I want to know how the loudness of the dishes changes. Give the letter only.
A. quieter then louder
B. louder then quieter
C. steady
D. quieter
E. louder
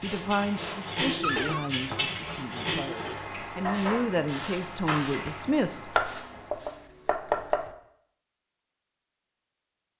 C.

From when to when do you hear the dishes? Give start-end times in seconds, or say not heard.
0.0-5.5.